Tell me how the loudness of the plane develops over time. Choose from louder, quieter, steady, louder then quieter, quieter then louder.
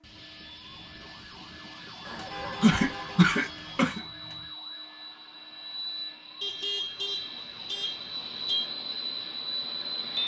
louder.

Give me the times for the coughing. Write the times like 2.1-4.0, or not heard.
2.1-4.0.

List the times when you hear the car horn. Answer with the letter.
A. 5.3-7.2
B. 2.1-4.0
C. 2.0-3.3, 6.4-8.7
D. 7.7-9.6
C.